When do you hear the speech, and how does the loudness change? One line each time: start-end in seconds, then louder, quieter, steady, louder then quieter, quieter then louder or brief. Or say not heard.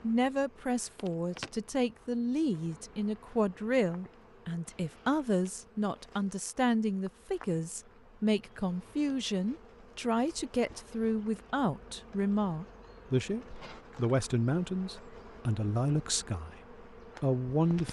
0.0-17.8 steady.